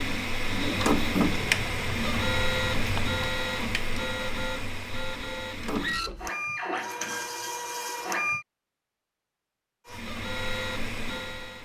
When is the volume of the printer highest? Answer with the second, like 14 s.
1 s.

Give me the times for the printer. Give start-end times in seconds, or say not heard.
0.0-8.4, 9.8-11.6.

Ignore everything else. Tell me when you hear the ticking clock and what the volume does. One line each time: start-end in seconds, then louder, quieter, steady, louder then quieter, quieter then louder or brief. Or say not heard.
not heard.